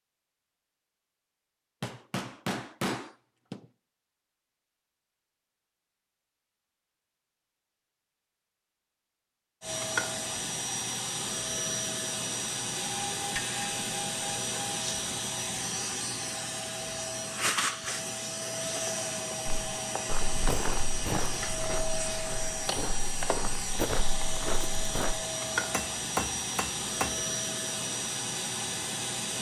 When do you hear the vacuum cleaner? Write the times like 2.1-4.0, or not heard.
9.6-29.3.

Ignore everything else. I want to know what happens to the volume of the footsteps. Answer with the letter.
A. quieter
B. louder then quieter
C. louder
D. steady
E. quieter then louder
E.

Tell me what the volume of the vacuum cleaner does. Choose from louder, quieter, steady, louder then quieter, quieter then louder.
steady.